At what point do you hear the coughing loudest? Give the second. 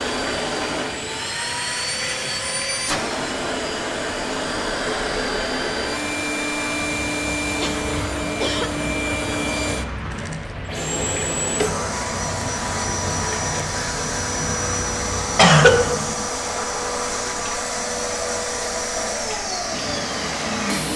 16 s.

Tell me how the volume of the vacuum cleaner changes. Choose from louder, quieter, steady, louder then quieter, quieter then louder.
steady.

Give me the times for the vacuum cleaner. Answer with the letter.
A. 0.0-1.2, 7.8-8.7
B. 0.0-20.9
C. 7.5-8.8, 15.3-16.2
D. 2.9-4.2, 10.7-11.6
B.